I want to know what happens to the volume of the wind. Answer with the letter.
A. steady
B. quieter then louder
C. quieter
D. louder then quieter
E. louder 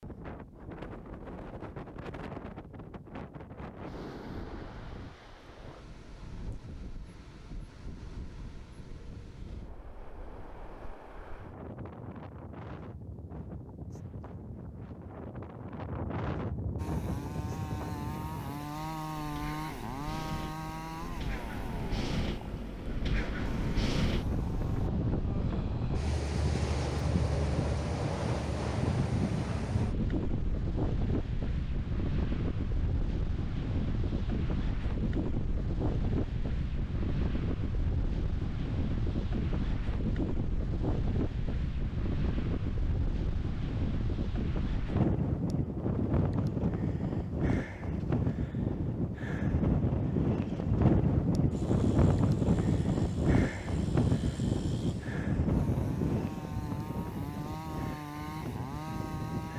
E.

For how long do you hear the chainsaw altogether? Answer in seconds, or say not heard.
16 s.